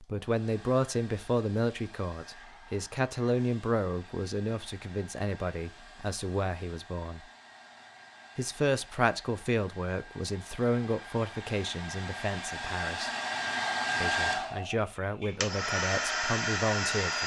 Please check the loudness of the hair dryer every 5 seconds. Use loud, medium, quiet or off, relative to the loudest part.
quiet, quiet, loud, loud.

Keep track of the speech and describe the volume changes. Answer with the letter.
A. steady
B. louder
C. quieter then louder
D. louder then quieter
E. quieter
A.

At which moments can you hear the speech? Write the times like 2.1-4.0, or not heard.
0.0-7.2, 8.3-13.1, 14.0-17.2.